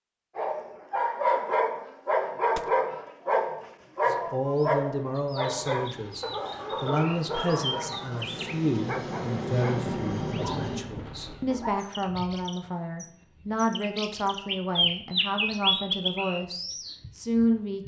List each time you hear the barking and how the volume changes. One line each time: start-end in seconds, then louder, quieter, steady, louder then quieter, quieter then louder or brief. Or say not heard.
0.3-11.8 quieter.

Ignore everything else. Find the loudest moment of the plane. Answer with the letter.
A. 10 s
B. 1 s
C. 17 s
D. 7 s
A.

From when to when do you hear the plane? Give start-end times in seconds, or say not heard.
5.8-10.8.